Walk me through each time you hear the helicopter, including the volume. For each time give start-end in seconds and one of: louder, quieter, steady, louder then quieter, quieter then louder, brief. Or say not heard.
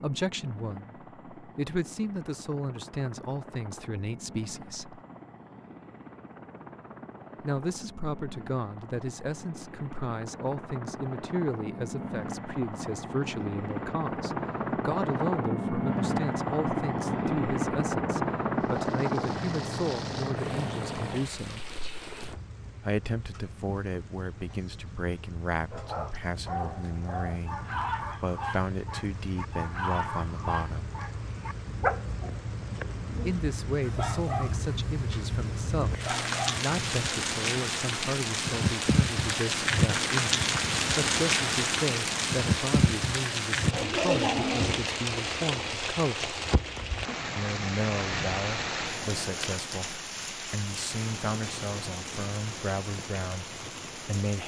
0.0-22.4 louder.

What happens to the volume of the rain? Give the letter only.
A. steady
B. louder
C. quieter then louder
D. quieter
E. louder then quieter
E.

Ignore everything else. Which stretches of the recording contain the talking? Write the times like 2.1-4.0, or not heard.
0.0-5.0, 7.4-21.7, 22.8-30.9, 33.2-46.4, 47.4-54.4.